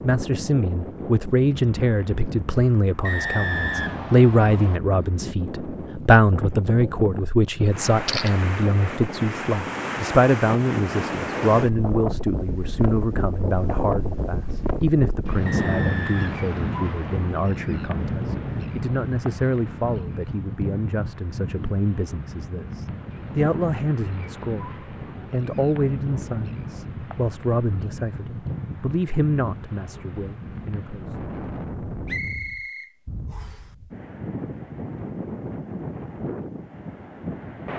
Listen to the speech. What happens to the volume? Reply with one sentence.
The loudness of the speech goes down.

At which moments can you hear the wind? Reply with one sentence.
The wind can be heard from 0.0 to 37.7 s.